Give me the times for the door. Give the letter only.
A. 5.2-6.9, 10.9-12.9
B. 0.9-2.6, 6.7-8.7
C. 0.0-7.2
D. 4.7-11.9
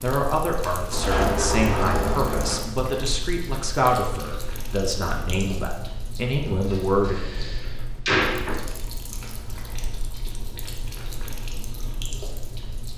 B.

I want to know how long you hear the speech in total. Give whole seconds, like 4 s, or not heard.
7 s.